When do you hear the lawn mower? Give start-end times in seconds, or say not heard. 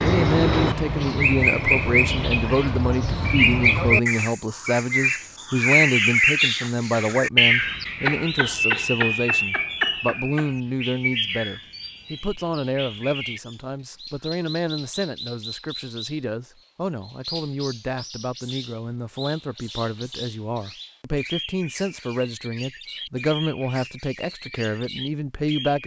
not heard.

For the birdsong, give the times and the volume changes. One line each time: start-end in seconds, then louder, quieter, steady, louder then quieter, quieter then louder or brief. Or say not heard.
0.0-25.8 quieter.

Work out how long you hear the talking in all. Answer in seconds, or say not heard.
26 s.